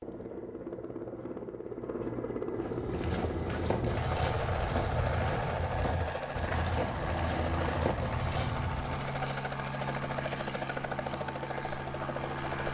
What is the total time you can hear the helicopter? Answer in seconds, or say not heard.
13 s.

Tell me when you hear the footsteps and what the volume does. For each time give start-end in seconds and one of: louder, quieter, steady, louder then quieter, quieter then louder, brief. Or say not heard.
2.5-9.1 steady.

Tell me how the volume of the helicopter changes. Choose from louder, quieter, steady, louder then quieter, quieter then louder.
steady.